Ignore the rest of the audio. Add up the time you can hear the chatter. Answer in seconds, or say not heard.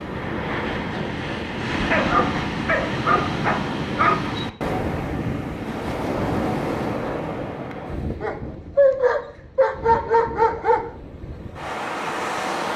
not heard.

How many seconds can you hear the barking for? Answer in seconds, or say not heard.
5 s.